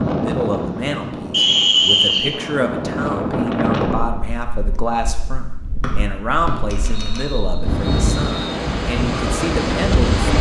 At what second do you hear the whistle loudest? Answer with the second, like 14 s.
2 s.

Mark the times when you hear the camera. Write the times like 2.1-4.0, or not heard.
6.7-7.2.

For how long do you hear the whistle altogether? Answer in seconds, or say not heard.
4 s.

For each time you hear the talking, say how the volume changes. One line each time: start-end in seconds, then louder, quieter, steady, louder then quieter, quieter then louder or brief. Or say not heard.
0.1-10.2 steady.